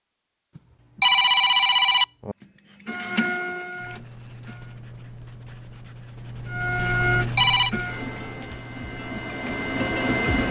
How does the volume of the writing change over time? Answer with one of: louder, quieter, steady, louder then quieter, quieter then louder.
louder then quieter.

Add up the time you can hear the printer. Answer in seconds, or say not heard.
6 s.